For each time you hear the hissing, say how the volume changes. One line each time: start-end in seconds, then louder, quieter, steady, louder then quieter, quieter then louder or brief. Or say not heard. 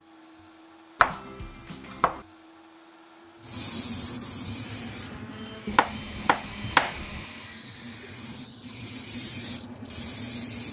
3.4-10.6 quieter then louder.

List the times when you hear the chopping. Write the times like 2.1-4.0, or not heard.
1.0-2.2, 5.7-7.2.